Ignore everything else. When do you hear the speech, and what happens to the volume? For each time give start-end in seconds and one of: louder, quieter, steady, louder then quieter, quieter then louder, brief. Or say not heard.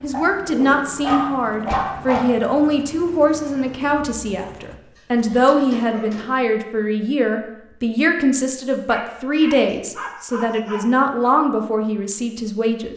0.0-12.9 steady.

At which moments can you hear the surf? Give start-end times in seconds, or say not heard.
not heard.